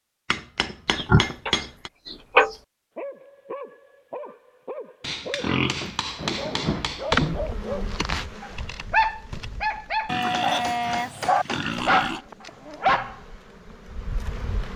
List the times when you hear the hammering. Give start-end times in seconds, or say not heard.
0.3-1.9, 5.0-7.3, 10.3-11.8.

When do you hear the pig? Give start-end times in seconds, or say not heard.
0.8-2.5, 5.3-7.5, 10.1-12.2.